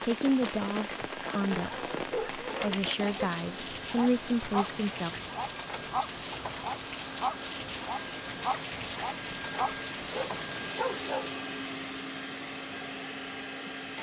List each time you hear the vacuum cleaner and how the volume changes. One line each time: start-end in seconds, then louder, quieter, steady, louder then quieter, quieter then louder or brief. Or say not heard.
0.0-13.9 louder.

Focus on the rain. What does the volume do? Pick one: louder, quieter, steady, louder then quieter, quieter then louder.
steady.